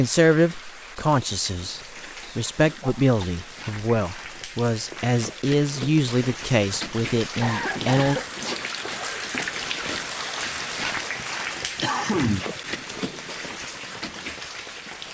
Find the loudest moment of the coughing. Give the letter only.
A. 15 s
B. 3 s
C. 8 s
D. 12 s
D.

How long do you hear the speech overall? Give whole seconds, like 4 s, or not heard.
8 s.